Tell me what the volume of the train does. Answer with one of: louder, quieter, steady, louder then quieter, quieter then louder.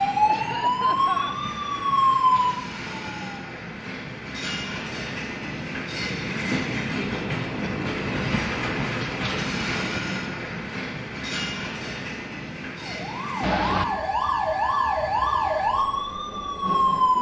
louder then quieter.